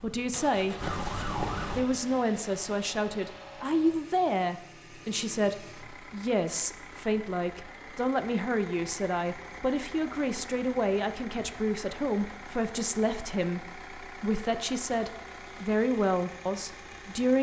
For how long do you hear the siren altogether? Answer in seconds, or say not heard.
2 s.